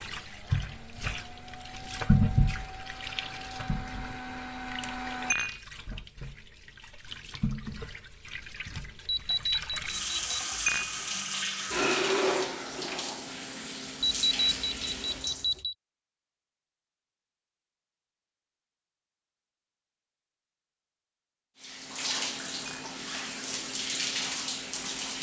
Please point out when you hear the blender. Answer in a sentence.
You can hear the blender from 0.0 to 5.3 s.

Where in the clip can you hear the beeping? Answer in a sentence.
You can hear the beeping from 9.1 to 10.4 s and from 14.0 to 15.8 s.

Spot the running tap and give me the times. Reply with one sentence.
You can hear the running tap from 0.0 to 15.6 s and from 21.6 to 25.1 s.